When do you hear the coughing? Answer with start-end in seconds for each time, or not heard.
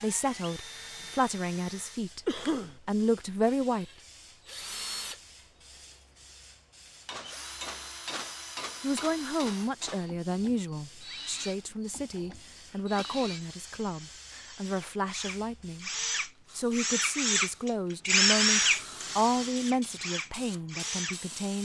2.2-2.8, 12.6-13.1.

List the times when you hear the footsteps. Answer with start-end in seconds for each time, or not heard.
not heard.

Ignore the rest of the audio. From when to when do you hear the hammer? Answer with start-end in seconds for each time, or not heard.
7.0-10.2.